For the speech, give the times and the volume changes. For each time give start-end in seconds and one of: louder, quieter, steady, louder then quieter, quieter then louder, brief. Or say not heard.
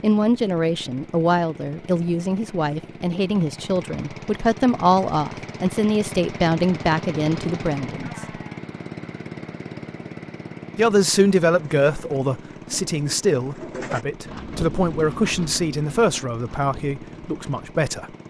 0.0-8.1 steady
10.8-18.1 quieter.